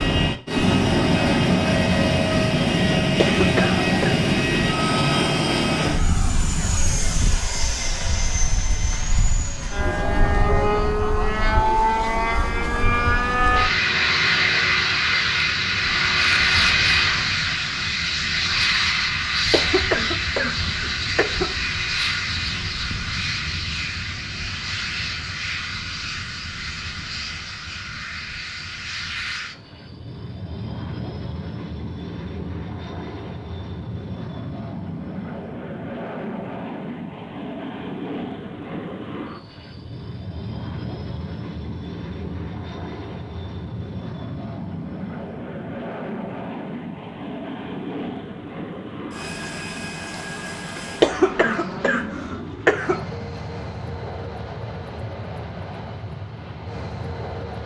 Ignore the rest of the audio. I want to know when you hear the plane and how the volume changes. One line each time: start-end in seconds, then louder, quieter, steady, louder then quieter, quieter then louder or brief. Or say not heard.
0.0-57.6 quieter.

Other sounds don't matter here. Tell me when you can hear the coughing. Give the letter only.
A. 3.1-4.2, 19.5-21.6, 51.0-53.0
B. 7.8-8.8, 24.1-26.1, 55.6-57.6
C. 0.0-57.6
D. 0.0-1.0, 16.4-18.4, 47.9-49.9
A.